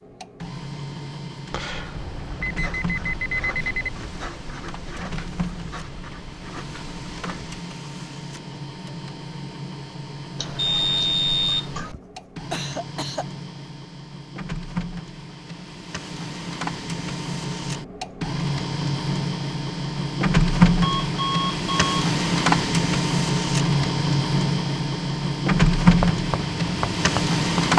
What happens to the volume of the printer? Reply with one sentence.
The volume of the printer goes up.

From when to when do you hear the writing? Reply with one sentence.
The writing can be heard from 1.5 to 7.5 s and from 25.8 to 27.7 s.